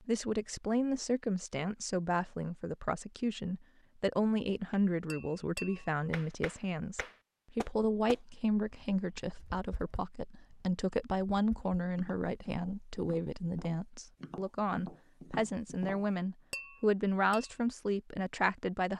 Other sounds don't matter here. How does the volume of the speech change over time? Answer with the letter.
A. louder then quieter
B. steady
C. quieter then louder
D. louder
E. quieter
B.